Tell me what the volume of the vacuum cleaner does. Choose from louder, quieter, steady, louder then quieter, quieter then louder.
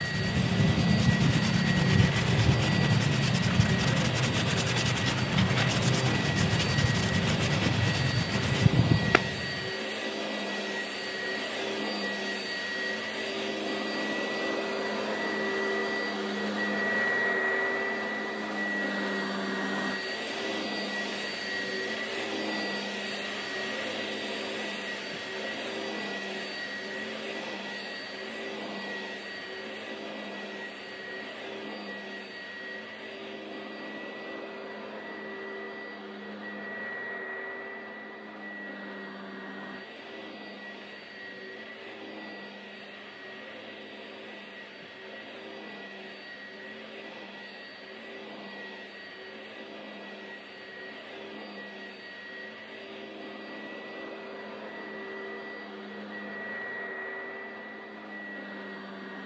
quieter.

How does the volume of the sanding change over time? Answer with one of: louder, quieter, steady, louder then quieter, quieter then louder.
steady.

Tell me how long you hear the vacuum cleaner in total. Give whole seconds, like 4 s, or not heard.
59 s.